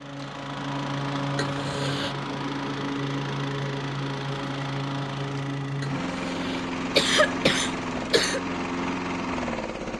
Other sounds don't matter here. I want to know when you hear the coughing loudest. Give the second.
7 s.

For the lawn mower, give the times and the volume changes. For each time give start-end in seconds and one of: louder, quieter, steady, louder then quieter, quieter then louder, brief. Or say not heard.
0.0-9.9 steady.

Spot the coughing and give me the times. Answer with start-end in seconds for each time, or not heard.
1.4-2.1, 5.8-8.4.